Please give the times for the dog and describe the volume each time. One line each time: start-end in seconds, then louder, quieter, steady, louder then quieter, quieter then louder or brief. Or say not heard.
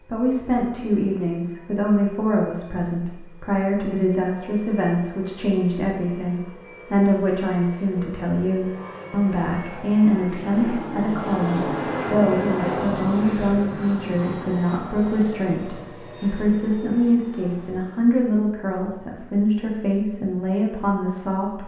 not heard.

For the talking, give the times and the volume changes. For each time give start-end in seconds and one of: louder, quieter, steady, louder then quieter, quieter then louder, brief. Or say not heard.
0.1-21.6 steady.